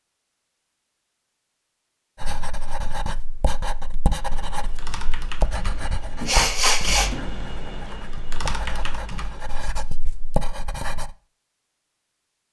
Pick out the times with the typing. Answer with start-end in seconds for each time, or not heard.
4.1-9.6.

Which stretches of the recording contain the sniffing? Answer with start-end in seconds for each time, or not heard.
5.8-7.3.